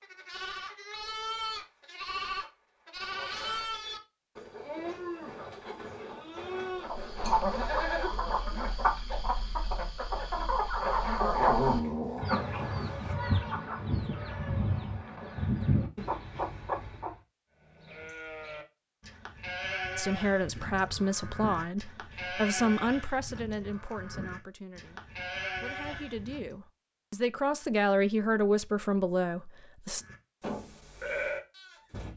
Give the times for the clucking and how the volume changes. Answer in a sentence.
The clucking can be heard from 6.8 to 17.1 s, at a steady volume.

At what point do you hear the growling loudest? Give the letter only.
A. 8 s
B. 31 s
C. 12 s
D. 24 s
C.